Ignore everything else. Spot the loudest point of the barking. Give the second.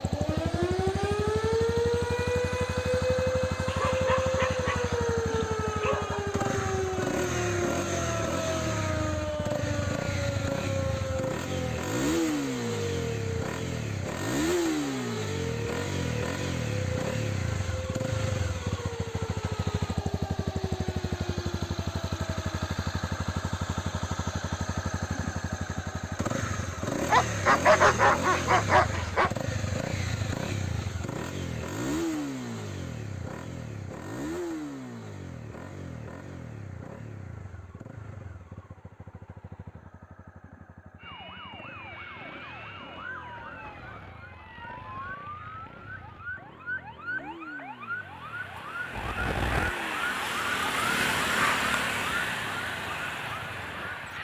28 s.